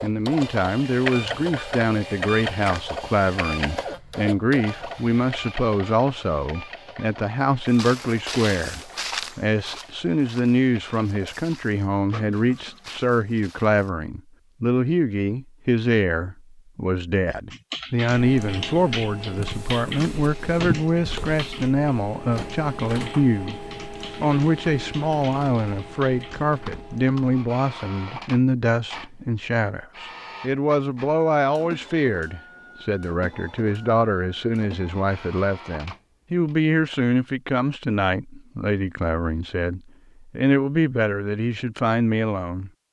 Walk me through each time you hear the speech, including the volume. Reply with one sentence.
You can hear the speech from 0.0 to 42.7 s, at a steady volume.